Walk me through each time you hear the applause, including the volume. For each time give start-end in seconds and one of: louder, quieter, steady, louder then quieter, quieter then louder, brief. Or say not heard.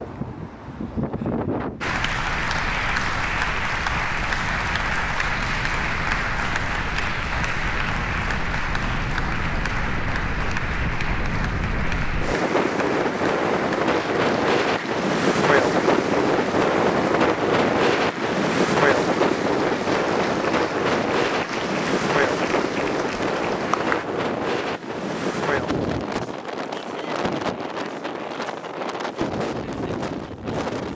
1.8-24.1 quieter.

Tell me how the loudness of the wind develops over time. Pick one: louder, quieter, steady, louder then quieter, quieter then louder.
louder then quieter.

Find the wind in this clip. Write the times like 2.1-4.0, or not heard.
0.0-30.9.